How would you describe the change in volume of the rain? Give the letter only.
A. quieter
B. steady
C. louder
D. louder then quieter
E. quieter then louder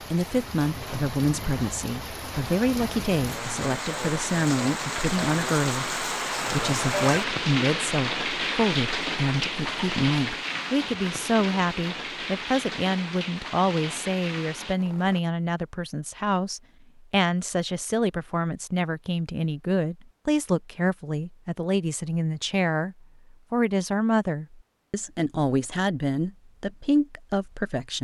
D.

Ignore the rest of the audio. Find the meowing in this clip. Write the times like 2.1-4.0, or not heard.
not heard.